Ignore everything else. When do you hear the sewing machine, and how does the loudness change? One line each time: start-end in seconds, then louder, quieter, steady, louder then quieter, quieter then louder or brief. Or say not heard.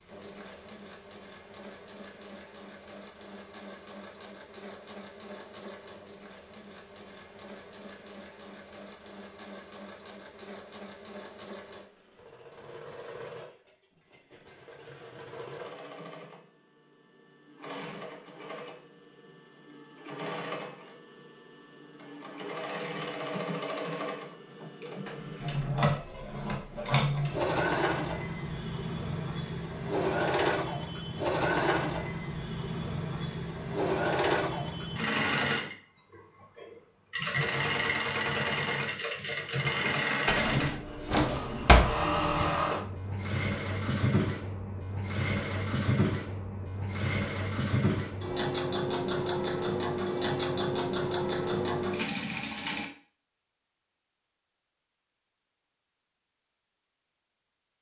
0.0-52.9 louder.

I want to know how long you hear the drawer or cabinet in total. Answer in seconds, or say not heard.
2 s.